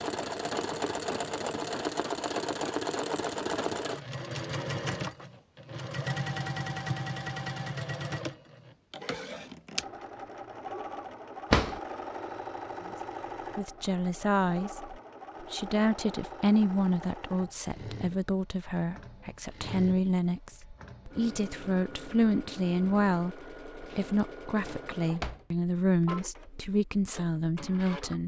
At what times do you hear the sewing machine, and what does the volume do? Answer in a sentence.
The sewing machine can be heard from 0.0 to 28.2 s, getting quieter.